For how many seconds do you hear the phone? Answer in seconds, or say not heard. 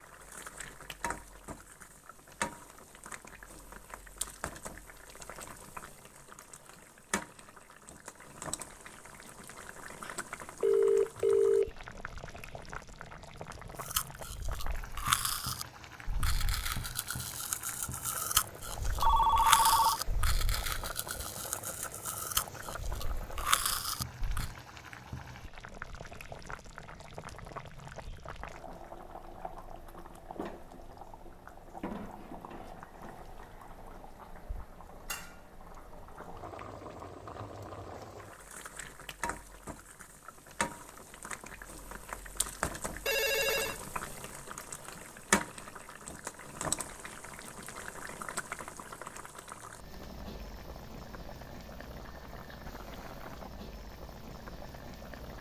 3 s.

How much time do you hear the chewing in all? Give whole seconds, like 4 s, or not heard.
11 s.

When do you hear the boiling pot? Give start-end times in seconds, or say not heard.
0.0-55.3.